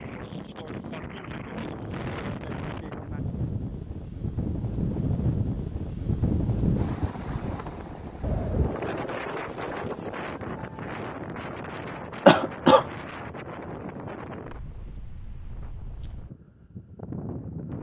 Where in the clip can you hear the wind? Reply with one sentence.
You can hear the wind from 0.0 to 17.7 s.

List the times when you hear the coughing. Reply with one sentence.
You can hear the coughing from 12.2 to 12.8 s.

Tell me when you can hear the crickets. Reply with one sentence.
You can't hear the crickets here.